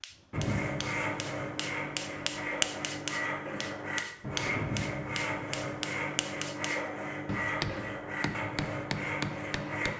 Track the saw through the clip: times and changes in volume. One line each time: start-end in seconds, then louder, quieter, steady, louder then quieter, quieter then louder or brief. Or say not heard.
0.3-9.9 steady.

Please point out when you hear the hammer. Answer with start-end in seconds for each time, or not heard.
0.0-9.9.